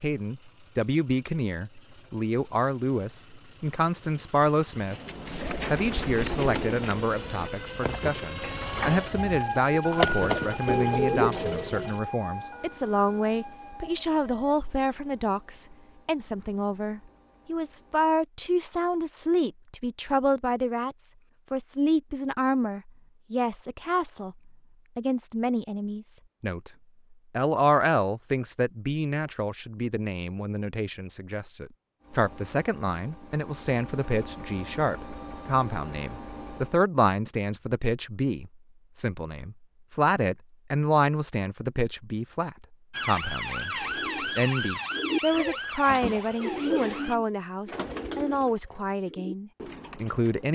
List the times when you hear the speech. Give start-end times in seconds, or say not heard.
0.0-26.7, 27.3-50.5.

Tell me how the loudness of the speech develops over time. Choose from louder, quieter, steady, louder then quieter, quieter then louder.
steady.